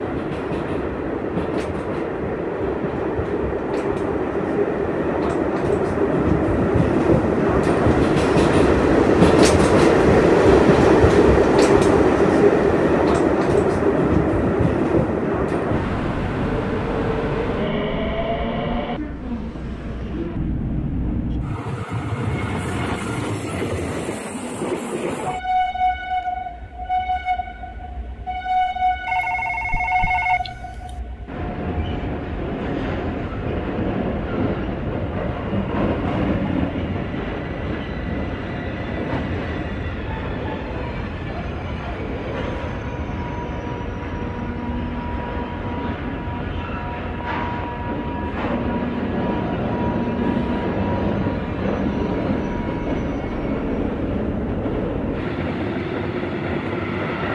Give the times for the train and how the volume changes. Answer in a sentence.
The train can be heard from 0.0 to 57.2 s, getting quieter.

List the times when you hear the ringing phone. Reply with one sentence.
You can hear the ringing phone from 29.1 to 31.0 s.